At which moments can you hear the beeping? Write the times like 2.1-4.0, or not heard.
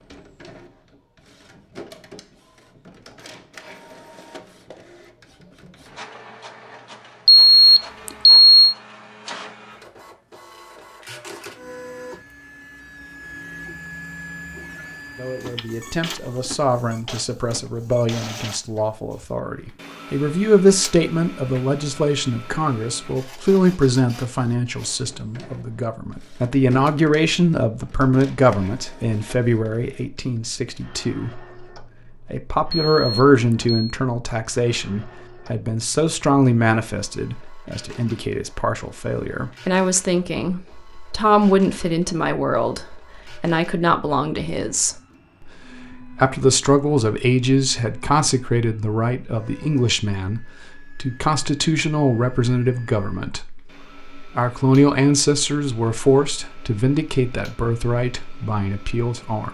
7.2-8.8, 32.8-33.8.